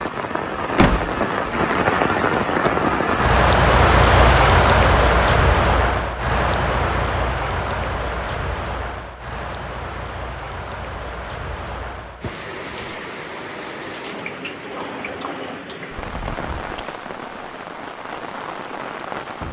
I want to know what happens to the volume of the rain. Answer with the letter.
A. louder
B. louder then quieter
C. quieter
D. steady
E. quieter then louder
C.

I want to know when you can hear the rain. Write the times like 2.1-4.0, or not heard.
0.0-19.4.